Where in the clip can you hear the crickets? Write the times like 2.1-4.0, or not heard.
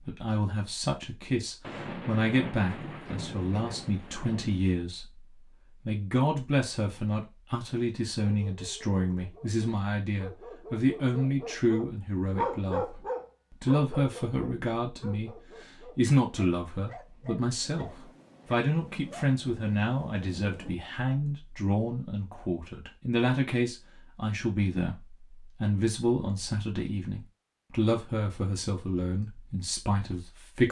not heard.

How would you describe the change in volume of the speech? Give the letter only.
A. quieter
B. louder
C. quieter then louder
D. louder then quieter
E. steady
E.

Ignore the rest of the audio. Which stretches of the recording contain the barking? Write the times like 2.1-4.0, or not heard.
8.2-19.2.